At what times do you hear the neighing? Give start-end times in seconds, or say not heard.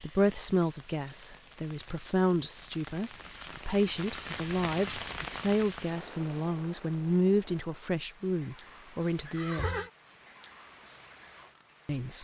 9.2-9.9.